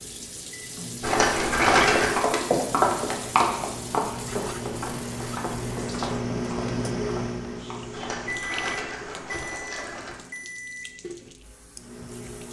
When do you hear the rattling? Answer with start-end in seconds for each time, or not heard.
1.0-2.2, 7.9-10.2.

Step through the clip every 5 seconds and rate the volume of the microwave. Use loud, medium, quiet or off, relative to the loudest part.
medium, loud, medium.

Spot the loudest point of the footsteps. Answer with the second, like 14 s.
3 s.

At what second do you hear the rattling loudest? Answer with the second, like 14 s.
2 s.